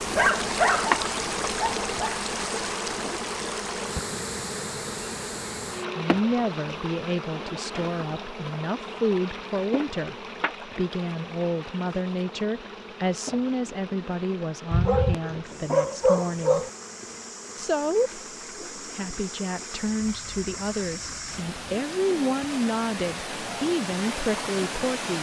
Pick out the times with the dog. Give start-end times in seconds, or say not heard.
0.1-2.2, 14.7-16.7.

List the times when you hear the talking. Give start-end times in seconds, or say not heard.
5.8-16.6, 17.6-25.1.